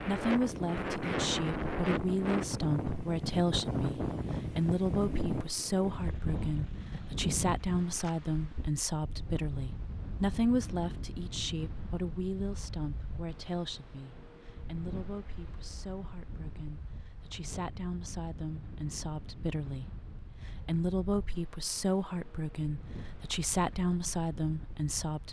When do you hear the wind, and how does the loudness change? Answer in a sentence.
The wind can be heard from 0.0 to 25.2 s, getting quieter.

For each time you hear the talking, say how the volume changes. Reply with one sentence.
You can hear the talking from 0.0 to 25.2 s, getting quieter then louder.